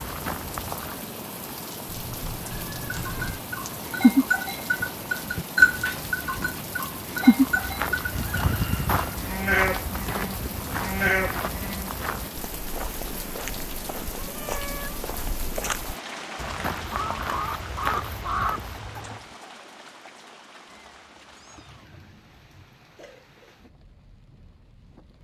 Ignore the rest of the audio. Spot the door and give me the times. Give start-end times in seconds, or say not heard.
not heard.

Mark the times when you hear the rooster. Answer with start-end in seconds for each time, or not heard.
8.1-9.2, 16.9-19.2.